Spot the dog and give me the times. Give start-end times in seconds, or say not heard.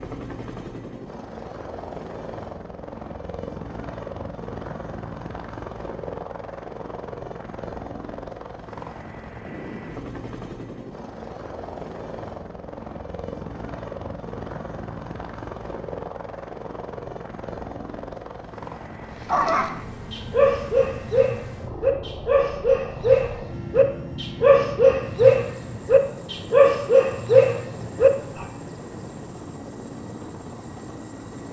19.2-28.4.